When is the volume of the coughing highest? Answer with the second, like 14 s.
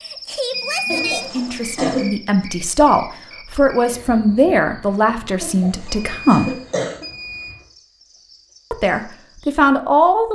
2 s.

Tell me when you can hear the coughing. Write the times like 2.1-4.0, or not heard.
0.8-2.0, 5.4-7.0.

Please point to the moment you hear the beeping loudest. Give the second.
1 s.